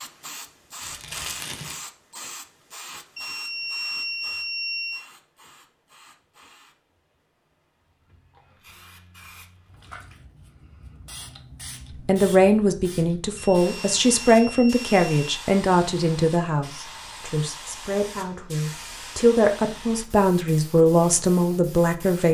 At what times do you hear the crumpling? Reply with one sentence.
The crumpling can be heard from 0.8 to 1.9 s.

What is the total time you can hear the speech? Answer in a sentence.
The speech can be heard for 10 seconds in total.